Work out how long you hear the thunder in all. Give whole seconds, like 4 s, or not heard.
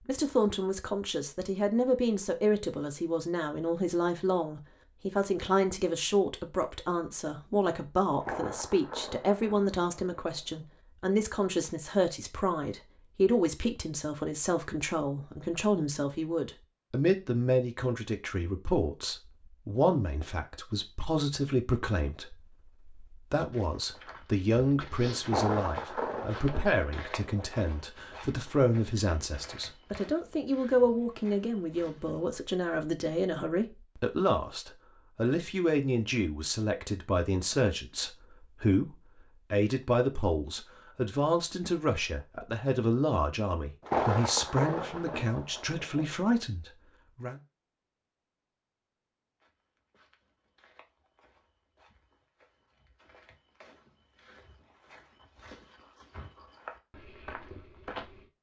7 s.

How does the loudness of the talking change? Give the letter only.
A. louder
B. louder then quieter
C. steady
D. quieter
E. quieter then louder
C.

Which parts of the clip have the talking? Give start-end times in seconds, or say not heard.
0.1-47.4.